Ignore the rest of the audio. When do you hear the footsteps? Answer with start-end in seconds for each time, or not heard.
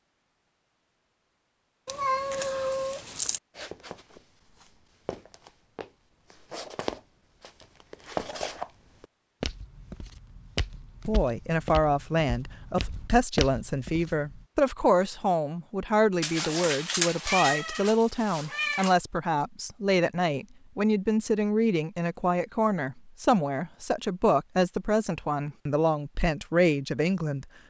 3.5-14.4.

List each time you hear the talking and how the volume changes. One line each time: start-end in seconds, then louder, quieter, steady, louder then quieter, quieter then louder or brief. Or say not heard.
11.1-27.4 steady.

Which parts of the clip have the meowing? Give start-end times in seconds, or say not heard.
1.9-3.4, 16.2-19.0.